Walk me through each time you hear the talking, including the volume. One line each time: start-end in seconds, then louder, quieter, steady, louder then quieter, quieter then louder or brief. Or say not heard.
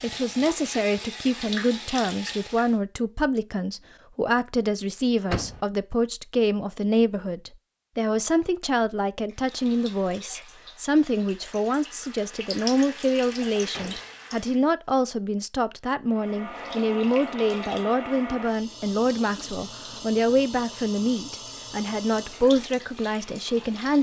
0.0-23.9 steady.